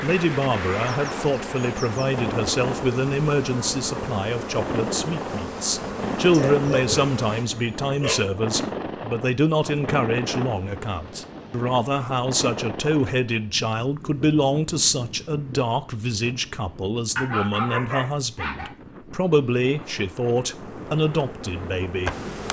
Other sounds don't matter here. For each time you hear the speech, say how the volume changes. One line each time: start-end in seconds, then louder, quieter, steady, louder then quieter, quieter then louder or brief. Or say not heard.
0.0-22.1 steady.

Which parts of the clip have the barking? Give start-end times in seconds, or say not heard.
6.3-8.3, 17.1-18.7.